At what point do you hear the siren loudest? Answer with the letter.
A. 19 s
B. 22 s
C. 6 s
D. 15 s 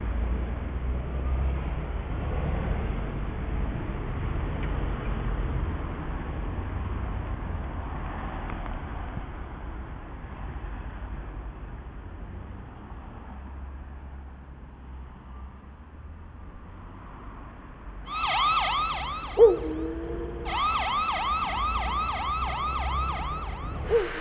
A.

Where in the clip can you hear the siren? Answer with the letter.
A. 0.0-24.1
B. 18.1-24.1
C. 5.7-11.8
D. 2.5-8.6
B.